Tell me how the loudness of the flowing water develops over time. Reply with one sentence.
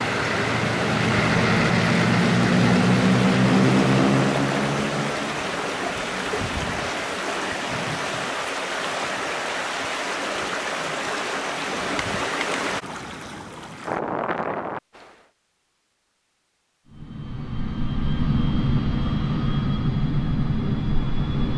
The volume of the flowing water stays about the same.